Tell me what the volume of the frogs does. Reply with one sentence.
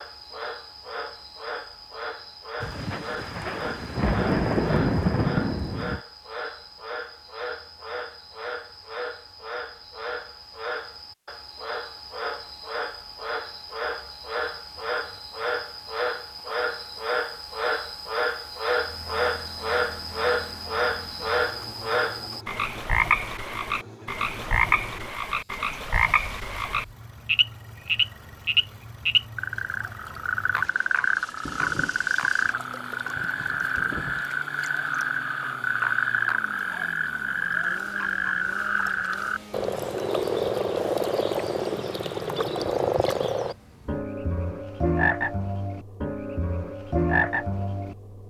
The loudness of the frogs goes up.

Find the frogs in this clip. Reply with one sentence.
The frogs can be heard from 0.0 to 48.0 s.